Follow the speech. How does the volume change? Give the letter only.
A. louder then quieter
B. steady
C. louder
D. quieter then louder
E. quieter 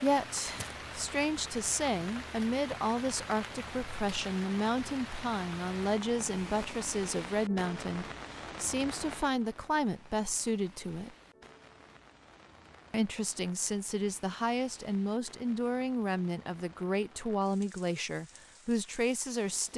B.